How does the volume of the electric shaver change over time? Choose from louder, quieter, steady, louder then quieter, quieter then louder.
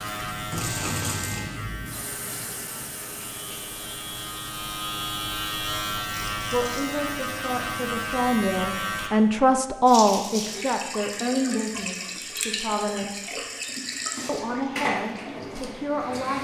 quieter then louder.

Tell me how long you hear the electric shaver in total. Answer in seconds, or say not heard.
9 s.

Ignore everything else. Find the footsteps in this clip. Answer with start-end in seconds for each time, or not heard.
not heard.